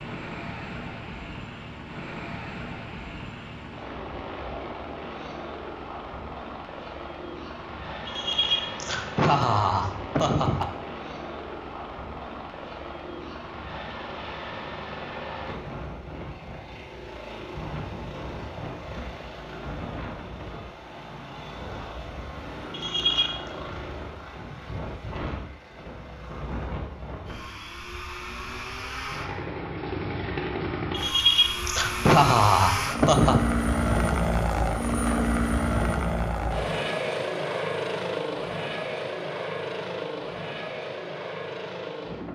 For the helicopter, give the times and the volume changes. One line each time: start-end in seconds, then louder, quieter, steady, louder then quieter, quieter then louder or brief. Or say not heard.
0.0-42.2 louder.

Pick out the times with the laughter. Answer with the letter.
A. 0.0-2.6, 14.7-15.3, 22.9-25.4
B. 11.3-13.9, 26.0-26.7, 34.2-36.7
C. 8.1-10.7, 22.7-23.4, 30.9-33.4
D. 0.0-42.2
C.